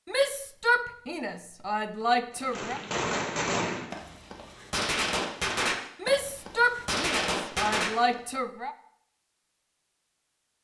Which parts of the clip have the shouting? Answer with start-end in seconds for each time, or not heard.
0.1-2.8, 6.0-8.8.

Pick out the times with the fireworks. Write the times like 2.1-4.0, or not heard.
2.4-8.2.